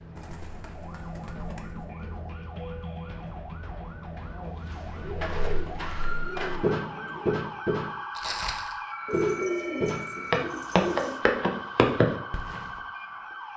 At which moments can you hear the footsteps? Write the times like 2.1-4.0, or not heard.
5.0-12.7.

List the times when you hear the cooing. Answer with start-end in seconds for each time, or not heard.
0.1-1.9, 4.8-7.3, 9.1-11.2.